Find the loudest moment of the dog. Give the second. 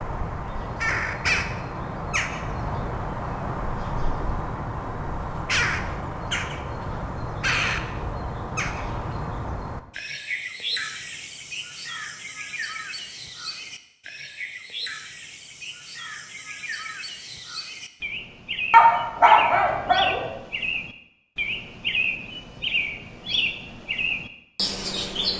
19 s.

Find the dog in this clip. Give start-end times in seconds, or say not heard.
18.7-20.3.